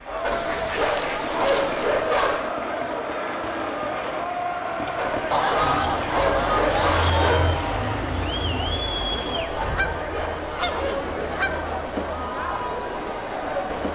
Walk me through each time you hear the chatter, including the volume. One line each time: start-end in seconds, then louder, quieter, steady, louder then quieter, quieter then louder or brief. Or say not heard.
0.0-13.9 steady.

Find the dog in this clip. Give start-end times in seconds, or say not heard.
0.2-2.5, 5.0-7.6, 9.6-11.3.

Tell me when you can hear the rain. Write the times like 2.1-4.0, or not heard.
0.0-9.4.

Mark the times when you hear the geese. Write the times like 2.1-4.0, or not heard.
0.3-1.9, 5.3-7.3, 9.6-11.5.